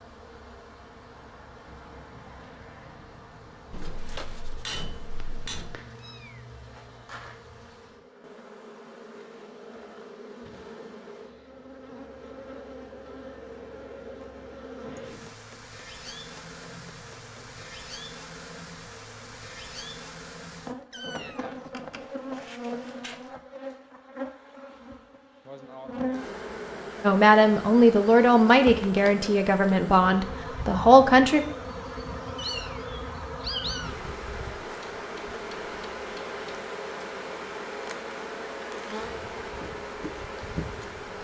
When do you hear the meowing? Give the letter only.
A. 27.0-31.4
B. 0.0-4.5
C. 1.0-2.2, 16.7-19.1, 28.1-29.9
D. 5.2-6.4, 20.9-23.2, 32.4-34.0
D.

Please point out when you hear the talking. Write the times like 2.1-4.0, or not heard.
27.0-31.4.